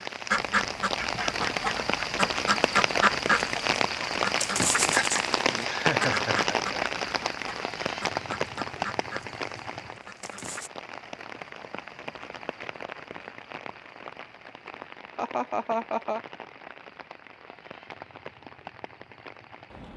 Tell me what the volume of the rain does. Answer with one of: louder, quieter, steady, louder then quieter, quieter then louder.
quieter.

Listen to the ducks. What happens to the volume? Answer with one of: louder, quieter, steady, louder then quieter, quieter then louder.
quieter.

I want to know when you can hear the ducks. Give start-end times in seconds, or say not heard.
0.3-10.7.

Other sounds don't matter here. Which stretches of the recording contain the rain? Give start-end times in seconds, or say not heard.
0.0-19.9.